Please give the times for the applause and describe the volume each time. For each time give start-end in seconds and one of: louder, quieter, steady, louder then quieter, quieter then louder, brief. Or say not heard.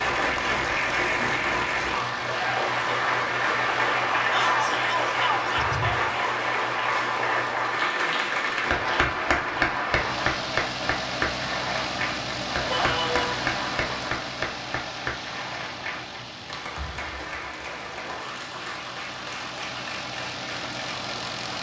0.0-21.5 quieter.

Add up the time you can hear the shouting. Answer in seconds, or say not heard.
2 s.